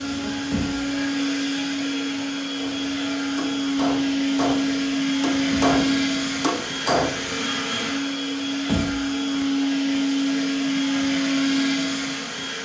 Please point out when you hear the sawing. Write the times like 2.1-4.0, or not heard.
not heard.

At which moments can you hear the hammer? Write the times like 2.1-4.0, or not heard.
2.5-7.5.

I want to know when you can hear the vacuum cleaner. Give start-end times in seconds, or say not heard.
0.0-12.5.